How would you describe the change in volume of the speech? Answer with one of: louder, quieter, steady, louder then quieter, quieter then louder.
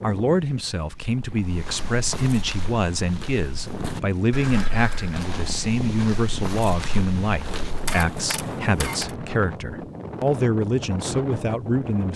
steady.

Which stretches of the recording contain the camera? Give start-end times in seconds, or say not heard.
7.8-9.2.